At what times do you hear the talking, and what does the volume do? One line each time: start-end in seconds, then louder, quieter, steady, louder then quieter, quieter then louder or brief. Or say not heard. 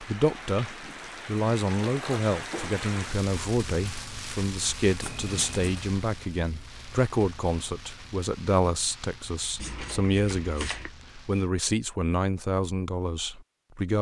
0.0-13.9 steady.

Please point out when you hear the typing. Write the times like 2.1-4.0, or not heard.
not heard.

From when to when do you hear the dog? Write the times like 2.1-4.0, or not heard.
not heard.